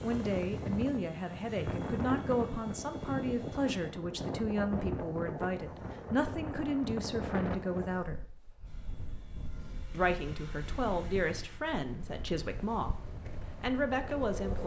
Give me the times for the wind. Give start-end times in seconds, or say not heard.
0.0-14.6.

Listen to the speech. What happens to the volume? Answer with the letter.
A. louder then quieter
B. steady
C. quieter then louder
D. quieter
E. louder
B.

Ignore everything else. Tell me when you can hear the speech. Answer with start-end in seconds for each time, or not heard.
0.0-8.2, 9.9-14.6.